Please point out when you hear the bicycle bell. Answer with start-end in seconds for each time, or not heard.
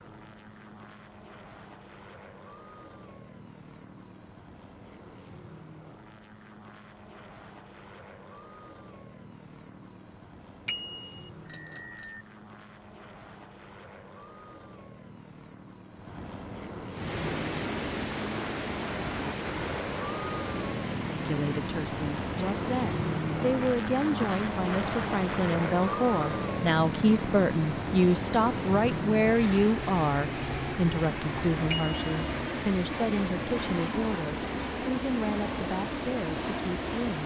10.7-12.2, 31.7-32.1.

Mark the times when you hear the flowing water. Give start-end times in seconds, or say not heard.
16.9-37.2.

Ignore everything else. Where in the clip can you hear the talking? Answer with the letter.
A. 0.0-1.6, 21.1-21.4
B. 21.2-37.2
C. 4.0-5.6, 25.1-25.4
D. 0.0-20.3
B.